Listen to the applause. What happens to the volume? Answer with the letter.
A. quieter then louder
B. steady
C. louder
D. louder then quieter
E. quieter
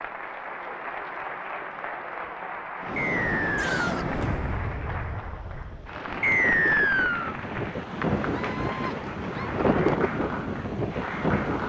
B.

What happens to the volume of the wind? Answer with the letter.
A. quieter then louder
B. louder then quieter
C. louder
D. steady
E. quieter
A.